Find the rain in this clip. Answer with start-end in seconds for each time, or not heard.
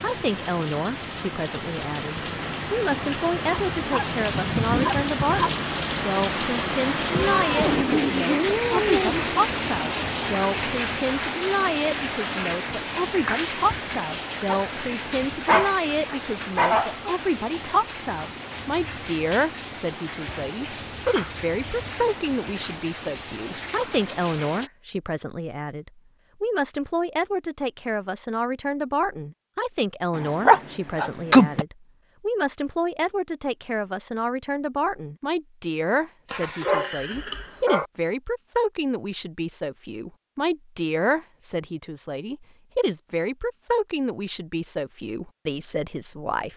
0.0-24.7.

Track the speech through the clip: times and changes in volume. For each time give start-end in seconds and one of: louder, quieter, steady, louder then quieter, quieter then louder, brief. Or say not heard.
0.0-46.5 steady.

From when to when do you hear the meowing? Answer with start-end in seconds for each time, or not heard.
7.1-9.2.